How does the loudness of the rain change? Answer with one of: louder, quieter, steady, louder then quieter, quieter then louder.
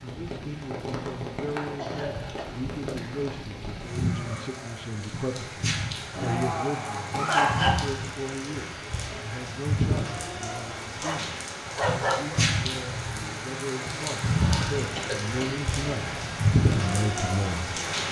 louder.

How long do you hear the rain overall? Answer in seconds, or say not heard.
18 s.